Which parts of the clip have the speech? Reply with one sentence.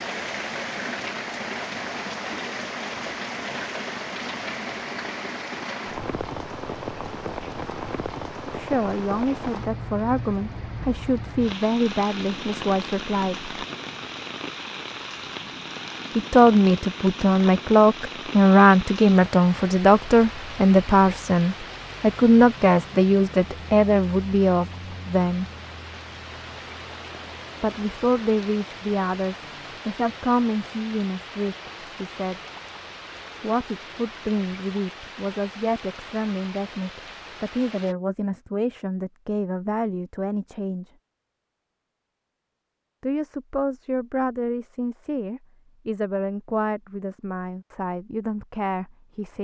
The speech can be heard from 8.4 to 13.5 s, from 16.1 to 25.4 s, from 27.6 to 32.4 s, from 33.4 to 40.9 s and from 43.0 to 49.3 s.